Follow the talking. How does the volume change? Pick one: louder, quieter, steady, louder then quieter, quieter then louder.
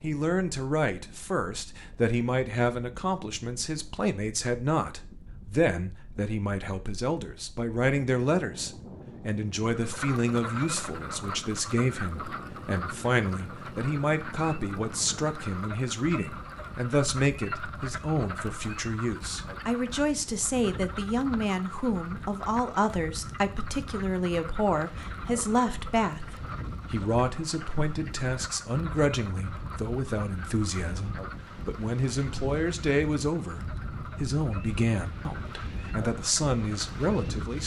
steady.